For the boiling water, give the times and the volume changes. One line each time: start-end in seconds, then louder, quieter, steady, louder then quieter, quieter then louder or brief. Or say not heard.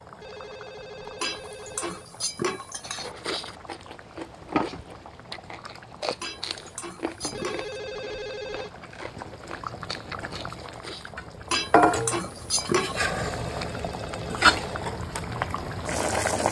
0.0-16.4 louder.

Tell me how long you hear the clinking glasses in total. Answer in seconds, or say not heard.
5 s.